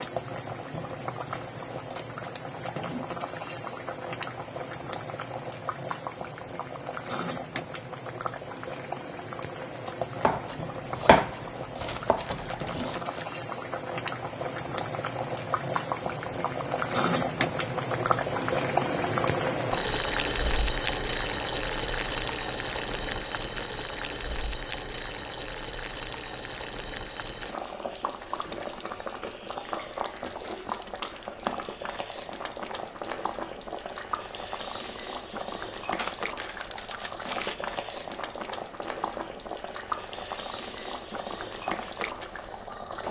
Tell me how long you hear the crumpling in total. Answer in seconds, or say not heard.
3 s.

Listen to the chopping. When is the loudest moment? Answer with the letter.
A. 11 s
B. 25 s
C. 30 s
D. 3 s
A.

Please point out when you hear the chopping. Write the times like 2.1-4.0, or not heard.
10.2-13.2.